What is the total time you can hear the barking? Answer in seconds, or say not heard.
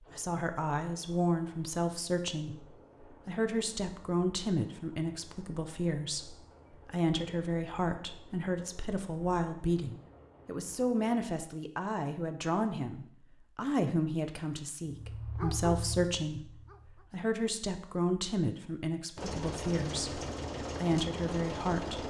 2 s.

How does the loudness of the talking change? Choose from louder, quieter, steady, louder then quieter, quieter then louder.
steady.